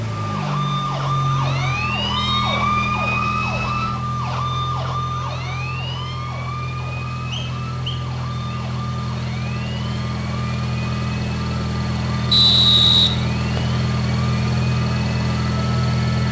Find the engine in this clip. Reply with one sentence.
The engine can be heard from 0.0 to 16.2 s.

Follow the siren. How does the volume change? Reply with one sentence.
The loudness of the siren goes down.